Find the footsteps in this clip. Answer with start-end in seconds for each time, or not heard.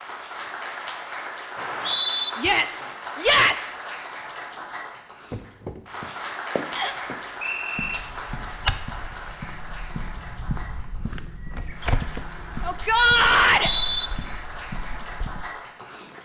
5.3-16.1.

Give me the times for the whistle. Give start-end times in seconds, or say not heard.
1.6-2.3, 6.8-8.0, 13.4-14.1.